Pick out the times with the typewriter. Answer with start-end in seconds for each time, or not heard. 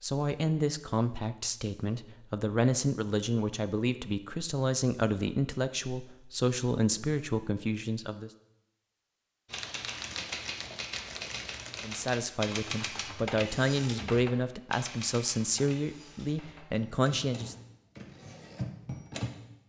9.4-19.3.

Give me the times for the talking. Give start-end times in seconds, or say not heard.
0.0-8.3, 11.8-17.6.